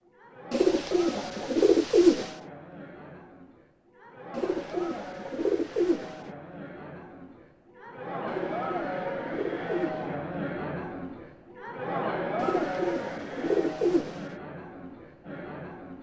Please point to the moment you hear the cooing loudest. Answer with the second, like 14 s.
2 s.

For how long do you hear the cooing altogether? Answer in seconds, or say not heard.
8 s.